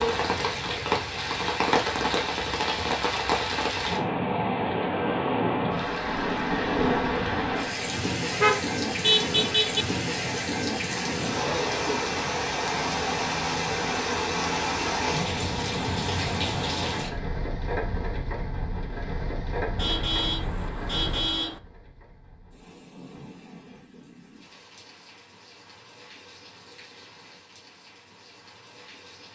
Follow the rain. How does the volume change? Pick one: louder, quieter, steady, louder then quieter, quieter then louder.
quieter.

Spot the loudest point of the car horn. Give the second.
9 s.